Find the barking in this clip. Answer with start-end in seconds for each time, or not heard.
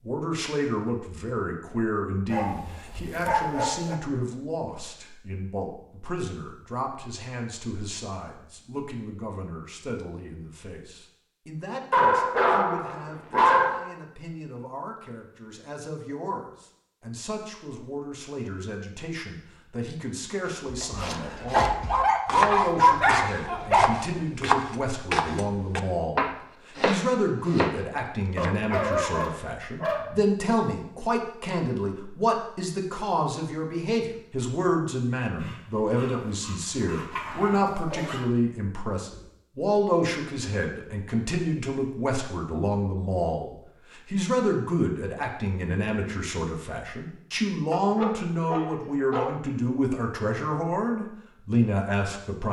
2.3-4.0, 11.9-13.8, 21.5-24.2, 28.4-30.2, 35.4-38.2, 47.7-49.3.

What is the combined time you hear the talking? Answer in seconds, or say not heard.
52 s.